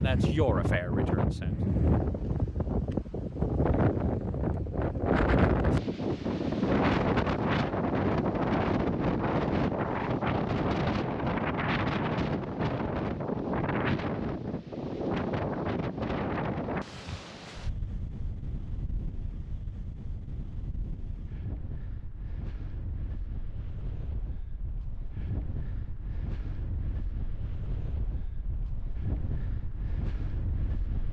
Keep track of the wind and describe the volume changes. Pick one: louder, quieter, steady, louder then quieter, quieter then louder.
quieter.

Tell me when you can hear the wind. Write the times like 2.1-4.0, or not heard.
0.0-31.0.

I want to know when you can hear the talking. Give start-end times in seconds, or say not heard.
0.0-1.6.